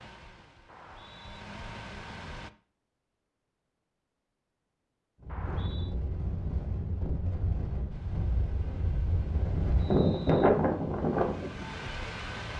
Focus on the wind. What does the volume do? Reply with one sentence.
The volume of the wind goes up.